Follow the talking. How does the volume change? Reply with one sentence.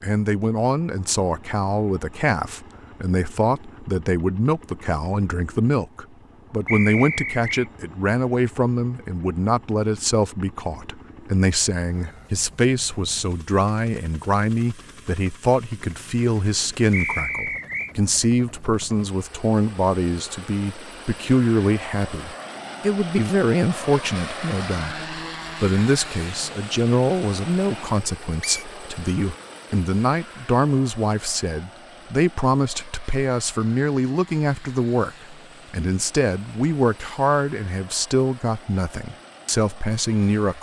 The loudness of the talking stays about the same.